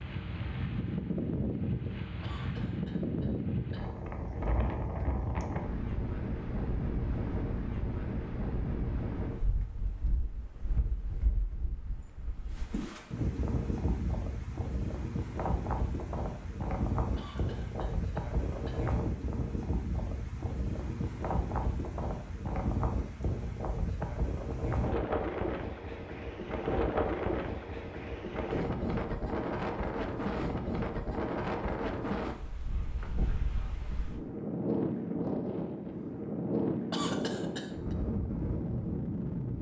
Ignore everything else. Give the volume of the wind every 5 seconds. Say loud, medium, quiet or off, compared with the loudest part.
loud, loud, medium, loud, loud, loud, loud, loud.